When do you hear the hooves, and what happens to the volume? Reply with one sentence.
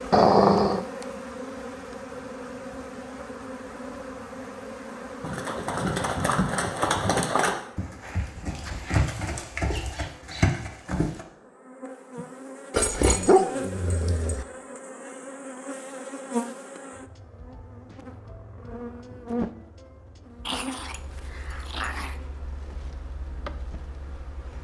You can hear the hooves from 5.2 to 11.2 s, getting quieter then louder.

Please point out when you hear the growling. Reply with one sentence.
The growling can be heard from 0.1 to 0.8 s, from 12.7 to 14.4 s and from 20.4 to 22.1 s.